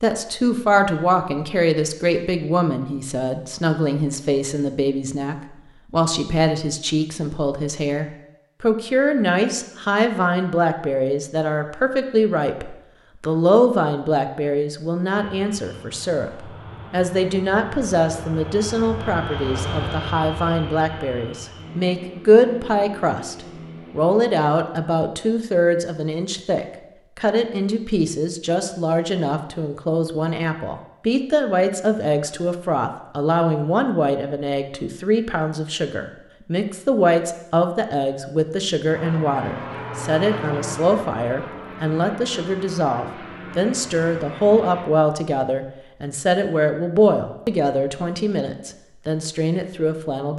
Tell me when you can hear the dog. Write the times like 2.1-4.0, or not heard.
not heard.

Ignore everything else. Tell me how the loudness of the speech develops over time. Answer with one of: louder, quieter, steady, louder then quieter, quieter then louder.
steady.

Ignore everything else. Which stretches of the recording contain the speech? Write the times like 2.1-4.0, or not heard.
0.0-50.3.